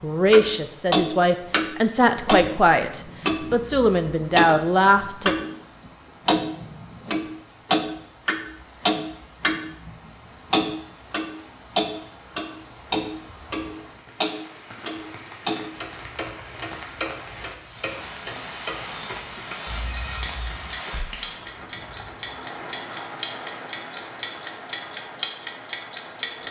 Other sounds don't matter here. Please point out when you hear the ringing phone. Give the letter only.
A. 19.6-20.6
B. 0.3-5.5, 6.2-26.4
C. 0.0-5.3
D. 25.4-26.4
A.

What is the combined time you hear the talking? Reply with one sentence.
You can hear the talking for 5 seconds altogether.